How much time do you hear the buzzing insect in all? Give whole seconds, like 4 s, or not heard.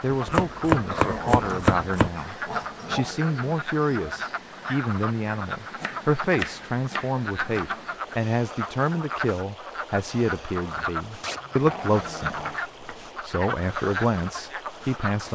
not heard.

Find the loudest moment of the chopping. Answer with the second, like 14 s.
1 s.